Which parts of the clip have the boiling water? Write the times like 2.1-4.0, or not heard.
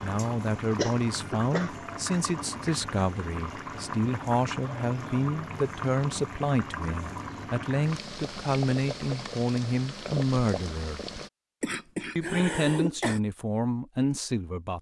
0.0-11.3.